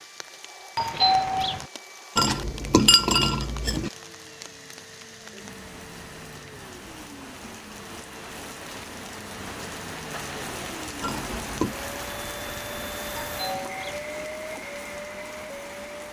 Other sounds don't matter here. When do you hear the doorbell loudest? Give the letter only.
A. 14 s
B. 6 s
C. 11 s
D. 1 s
D.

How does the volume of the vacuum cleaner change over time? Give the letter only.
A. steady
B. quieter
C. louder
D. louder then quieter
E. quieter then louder
C.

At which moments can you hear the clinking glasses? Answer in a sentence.
You can hear the clinking glasses from 2.1 to 3.9 s and from 11.0 to 11.8 s.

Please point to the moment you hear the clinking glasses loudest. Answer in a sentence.
The loudest moment of the clinking glasses is at 3 seconds.